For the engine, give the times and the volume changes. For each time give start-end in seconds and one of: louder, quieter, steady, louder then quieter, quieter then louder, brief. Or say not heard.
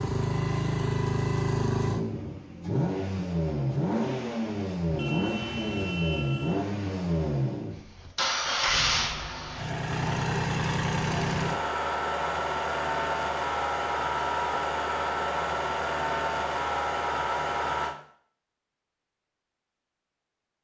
0.0-17.9 steady.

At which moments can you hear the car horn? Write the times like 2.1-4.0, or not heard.
4.8-6.7.